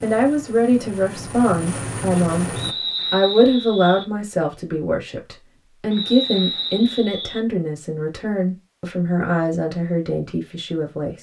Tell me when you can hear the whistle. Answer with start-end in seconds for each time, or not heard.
2.5-4.0, 5.9-7.4.